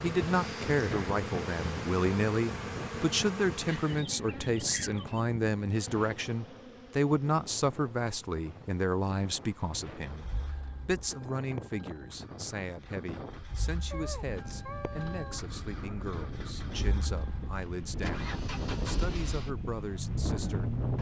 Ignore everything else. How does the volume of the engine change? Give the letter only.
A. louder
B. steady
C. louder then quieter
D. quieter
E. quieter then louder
A.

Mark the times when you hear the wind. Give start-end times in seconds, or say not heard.
0.0-20.9.